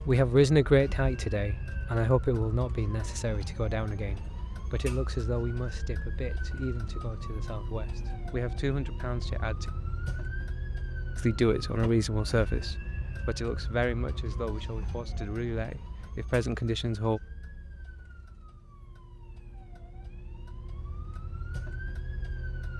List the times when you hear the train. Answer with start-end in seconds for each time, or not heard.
not heard.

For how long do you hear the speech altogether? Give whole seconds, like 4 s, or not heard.
16 s.